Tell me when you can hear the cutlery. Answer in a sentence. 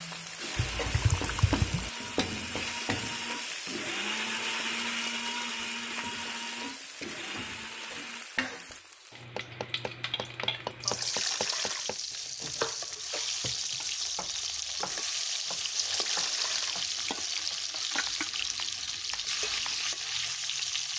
The cutlery can't be heard in this clip.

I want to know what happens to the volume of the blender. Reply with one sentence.
The volume of the blender goes up, then down.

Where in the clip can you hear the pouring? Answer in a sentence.
The pouring can be heard from 0.6 to 1.9 s, from 10.8 to 11.9 s and from 15.8 to 16.8 s.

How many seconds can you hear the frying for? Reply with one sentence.
The frying can be heard for 21 seconds in total.